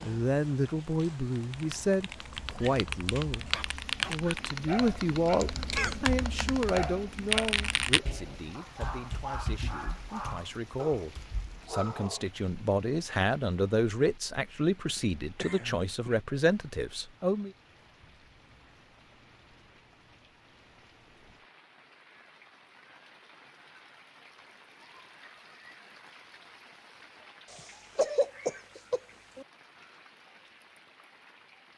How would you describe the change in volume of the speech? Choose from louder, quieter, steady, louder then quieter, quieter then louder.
quieter then louder.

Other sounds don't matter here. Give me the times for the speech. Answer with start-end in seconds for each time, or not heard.
0.0-17.5.